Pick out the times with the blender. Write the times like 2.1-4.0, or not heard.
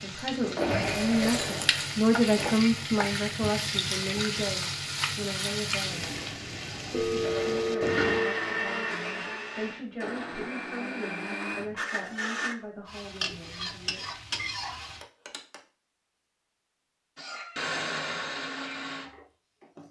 0.6-2.5, 7.2-12.6, 17.1-19.8.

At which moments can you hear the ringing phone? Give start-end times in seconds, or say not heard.
0.7-1.6, 6.9-8.4, 15.0-15.6.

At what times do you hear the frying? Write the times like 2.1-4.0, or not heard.
0.0-8.2, 12.8-15.1.